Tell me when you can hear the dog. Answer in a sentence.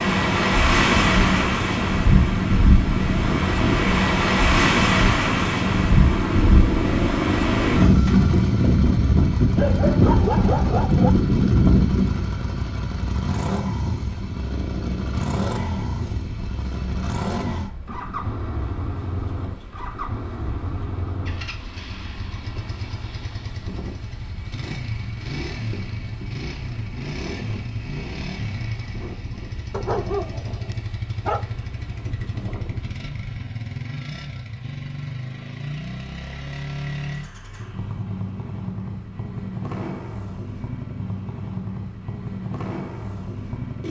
The dog can be heard from 9.6 to 11.1 s and from 29.7 to 31.5 s.